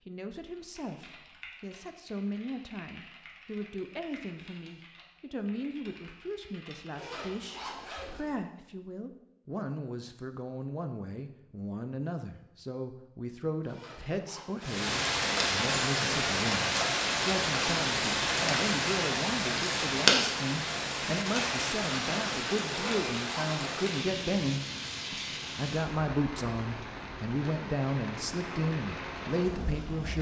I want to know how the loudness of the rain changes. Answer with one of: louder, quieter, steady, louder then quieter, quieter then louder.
quieter.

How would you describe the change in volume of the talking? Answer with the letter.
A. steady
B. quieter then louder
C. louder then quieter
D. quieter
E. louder
E.